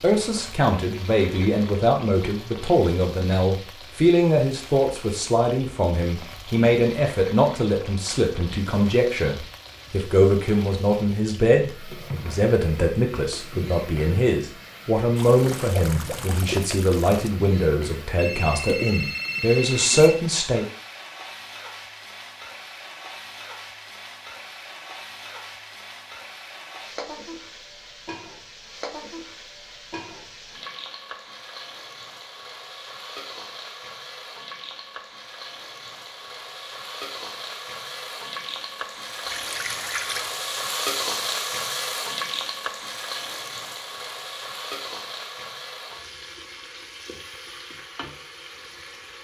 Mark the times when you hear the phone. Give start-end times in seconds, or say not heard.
18.1-20.2.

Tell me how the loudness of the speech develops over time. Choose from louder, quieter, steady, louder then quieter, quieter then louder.
steady.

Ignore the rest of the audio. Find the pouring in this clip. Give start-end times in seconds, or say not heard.
15.2-17.4, 39.2-40.3.